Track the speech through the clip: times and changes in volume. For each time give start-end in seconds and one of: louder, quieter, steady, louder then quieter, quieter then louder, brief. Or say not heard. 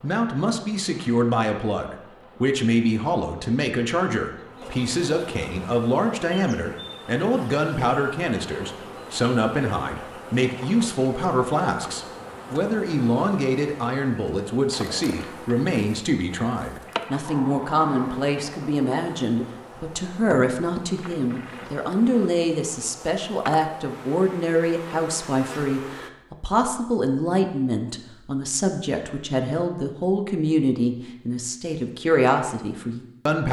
0.0-33.4 steady.